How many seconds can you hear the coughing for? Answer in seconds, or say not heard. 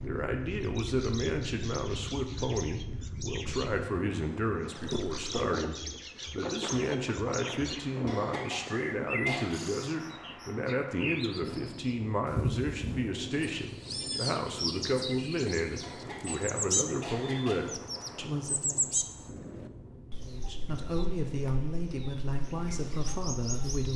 3 s.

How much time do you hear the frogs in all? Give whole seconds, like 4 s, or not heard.
not heard.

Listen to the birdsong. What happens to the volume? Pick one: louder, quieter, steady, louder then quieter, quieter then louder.
louder then quieter.